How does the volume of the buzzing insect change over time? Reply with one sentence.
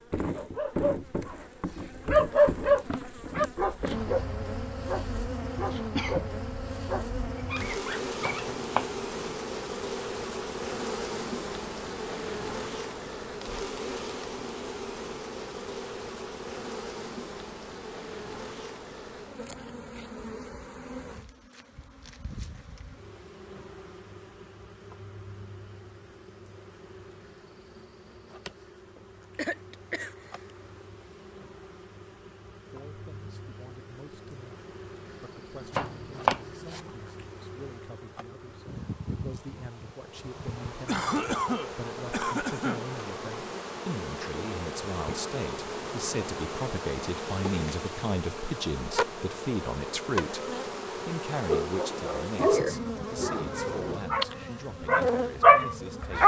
The loudness of the buzzing insect goes down, then up.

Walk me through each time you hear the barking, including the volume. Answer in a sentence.
You can hear the barking from 0.3 to 8.6 s, getting quieter; and from 51.5 to 56.2 s, getting quieter then louder.